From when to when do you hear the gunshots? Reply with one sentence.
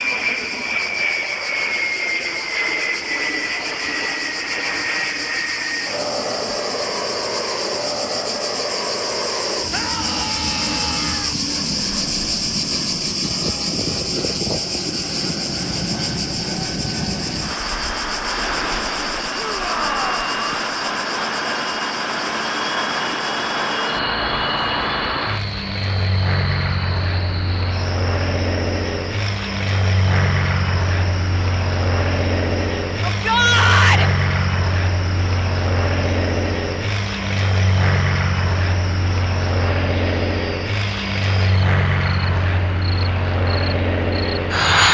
The gunshots can't be heard in this clip.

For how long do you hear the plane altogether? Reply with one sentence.
You can hear the plane for 45 seconds altogether.